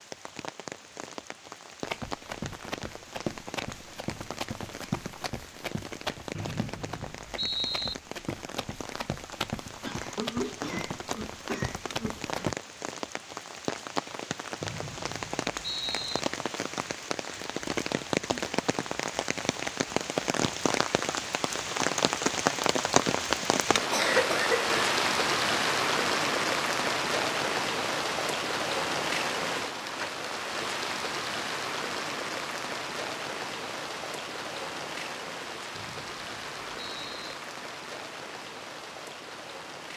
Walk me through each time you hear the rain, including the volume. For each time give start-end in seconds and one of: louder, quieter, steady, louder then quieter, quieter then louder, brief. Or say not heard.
0.0-39.9 louder then quieter.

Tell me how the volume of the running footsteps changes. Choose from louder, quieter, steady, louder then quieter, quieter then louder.
quieter then louder.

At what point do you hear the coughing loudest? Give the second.
24 s.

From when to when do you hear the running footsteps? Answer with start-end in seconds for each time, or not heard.
1.8-12.6.